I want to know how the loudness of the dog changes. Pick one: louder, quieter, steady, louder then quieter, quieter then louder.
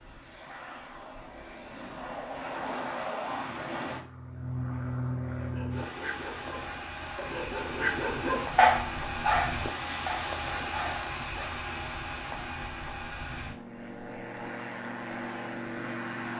louder then quieter.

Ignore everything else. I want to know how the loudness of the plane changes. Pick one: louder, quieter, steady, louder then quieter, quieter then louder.
steady.